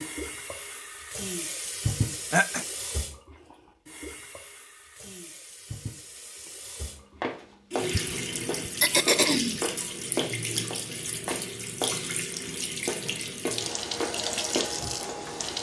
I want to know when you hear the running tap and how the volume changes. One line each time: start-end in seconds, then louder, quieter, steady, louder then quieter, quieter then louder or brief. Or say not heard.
0.0-15.5 quieter then louder.